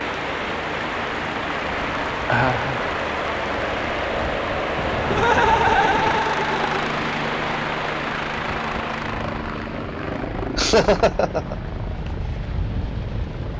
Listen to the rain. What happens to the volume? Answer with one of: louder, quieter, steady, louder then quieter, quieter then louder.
quieter.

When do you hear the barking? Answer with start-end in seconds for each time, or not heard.
not heard.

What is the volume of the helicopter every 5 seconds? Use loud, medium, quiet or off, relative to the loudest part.
loud, loud, medium.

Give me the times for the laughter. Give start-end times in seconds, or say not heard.
2.2-2.8, 5.1-6.8, 10.6-11.6.